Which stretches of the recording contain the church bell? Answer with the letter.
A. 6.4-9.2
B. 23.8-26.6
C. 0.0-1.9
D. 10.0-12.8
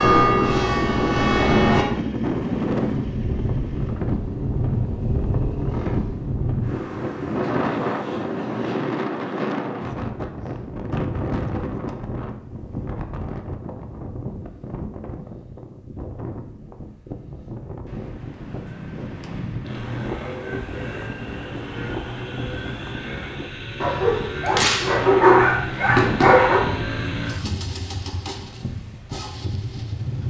C.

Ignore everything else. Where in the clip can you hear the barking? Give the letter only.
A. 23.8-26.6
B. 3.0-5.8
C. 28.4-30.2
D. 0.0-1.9
A.